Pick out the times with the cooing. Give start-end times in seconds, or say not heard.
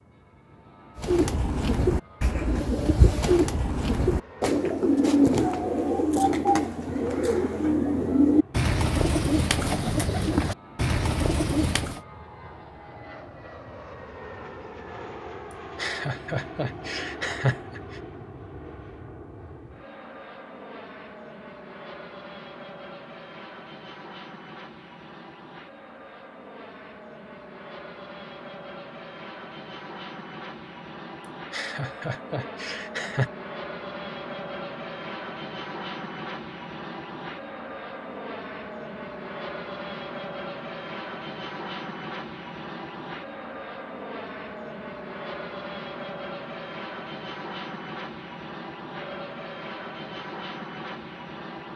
0.9-12.0.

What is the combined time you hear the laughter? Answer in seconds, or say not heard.
4 s.